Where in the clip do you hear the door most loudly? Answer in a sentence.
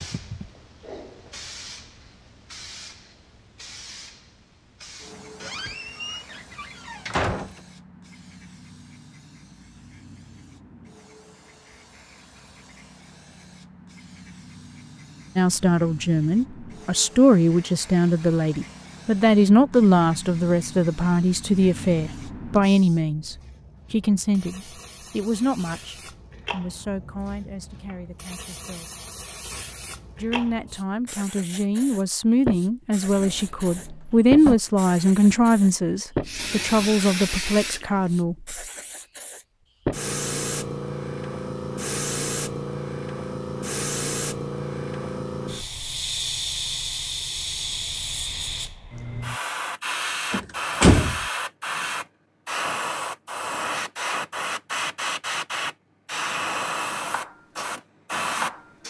The volume of the door peaks at 51 seconds.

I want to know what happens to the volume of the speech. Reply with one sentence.
The loudness of the speech goes down, then up.